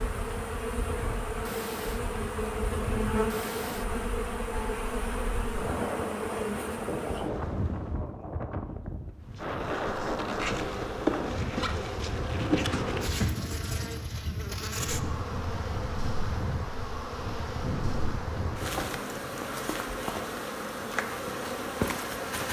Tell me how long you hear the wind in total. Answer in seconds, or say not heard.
19 s.